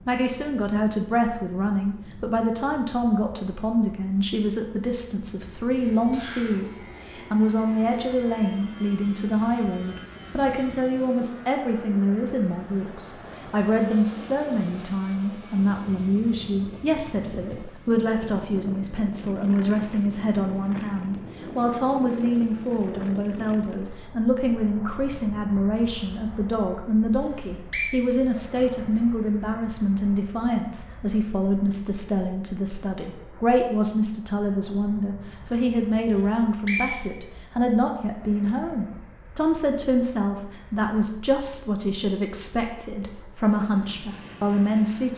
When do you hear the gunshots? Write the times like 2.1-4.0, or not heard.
not heard.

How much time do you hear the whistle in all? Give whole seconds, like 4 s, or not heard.
2 s.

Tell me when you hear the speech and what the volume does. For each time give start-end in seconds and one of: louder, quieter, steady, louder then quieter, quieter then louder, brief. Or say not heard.
0.1-45.1 steady.